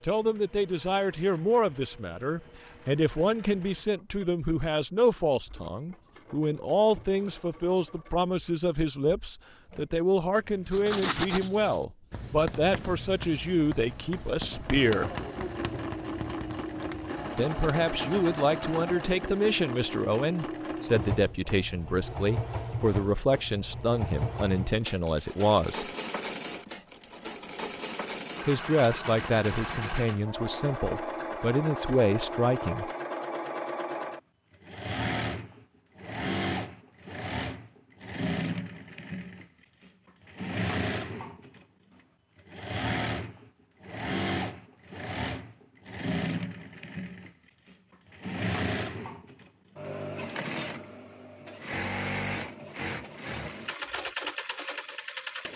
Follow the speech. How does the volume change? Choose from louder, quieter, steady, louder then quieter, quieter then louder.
steady.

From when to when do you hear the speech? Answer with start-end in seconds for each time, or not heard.
0.0-15.1, 17.4-25.9, 28.4-32.9.